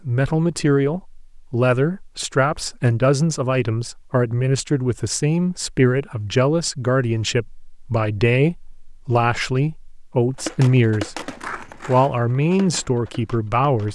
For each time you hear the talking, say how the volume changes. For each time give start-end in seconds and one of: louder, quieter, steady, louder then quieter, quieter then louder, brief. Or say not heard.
0.0-13.9 steady.